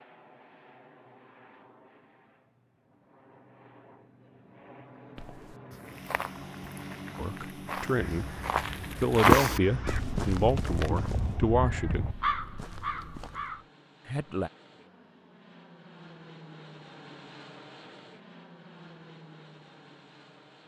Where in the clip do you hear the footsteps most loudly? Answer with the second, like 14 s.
9 s.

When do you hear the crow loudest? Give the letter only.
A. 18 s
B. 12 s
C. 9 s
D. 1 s
B.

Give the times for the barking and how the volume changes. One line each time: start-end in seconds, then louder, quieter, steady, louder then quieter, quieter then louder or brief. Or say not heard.
not heard.